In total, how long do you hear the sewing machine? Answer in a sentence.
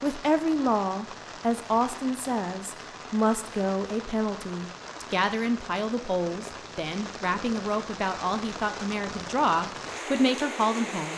You can't hear the sewing machine here.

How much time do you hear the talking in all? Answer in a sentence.
The talking can be heard for 11 seconds in total.